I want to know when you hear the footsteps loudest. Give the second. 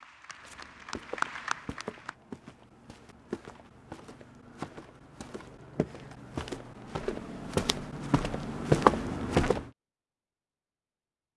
9 s.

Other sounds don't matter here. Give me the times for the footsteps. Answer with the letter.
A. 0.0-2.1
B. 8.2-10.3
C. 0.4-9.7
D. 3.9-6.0
C.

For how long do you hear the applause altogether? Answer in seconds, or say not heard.
2 s.